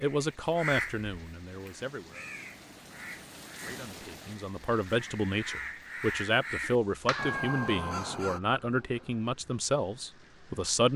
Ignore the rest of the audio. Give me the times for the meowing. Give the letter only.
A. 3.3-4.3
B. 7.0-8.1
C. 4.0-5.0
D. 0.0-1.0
B.